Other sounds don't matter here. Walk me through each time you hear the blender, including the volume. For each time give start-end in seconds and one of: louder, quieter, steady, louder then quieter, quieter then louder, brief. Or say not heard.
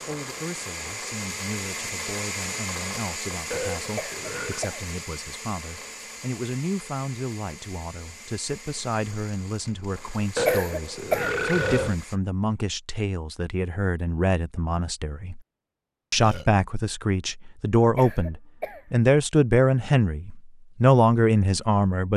0.0-12.2 quieter.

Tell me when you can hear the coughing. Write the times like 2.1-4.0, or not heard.
4.0-5.0, 10.4-11.3, 17.9-18.9.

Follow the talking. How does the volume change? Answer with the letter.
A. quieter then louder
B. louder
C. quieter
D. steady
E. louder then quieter
B.